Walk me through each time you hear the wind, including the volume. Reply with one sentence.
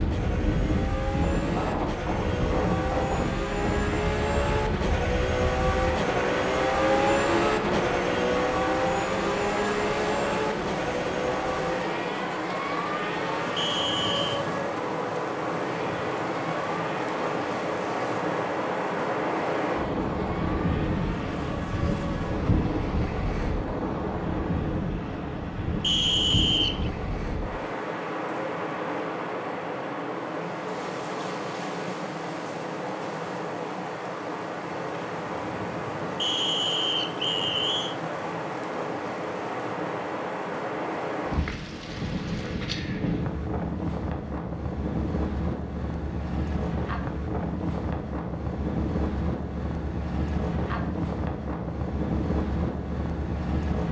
The wind can be heard from 0.0 to 53.8 s, at a steady volume.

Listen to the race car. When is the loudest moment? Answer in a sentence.
The volume of the race car peaks at 7 seconds.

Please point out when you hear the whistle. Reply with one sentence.
You can hear the whistle from 13.6 to 14.4 s, from 25.8 to 26.9 s and from 36.1 to 38.0 s.